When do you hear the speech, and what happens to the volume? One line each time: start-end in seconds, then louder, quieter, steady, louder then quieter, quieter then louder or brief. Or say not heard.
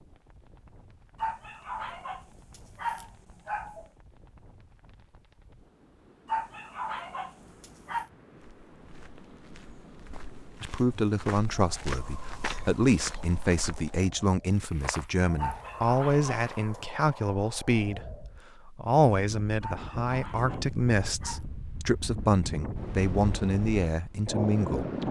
10.6-24.9 steady.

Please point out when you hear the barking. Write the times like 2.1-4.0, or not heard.
1.2-3.9, 6.2-8.1, 15.3-16.8, 19.6-21.4.